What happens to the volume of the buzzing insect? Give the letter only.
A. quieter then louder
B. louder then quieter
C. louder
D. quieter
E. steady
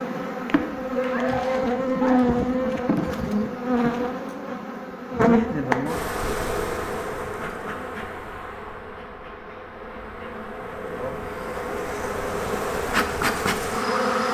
A.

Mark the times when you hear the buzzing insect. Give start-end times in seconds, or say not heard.
0.0-14.2.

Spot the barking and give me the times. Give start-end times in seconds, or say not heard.
0.9-2.4.